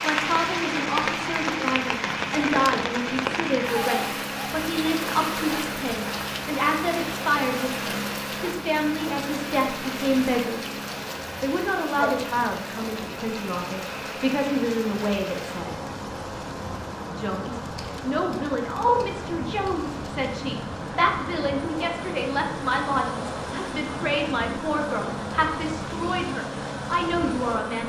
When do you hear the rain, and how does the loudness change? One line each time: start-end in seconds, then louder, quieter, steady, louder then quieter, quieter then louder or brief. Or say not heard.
0.0-27.6 quieter.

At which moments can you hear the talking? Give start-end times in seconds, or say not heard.
0.0-10.8, 11.4-15.8, 17.1-27.8.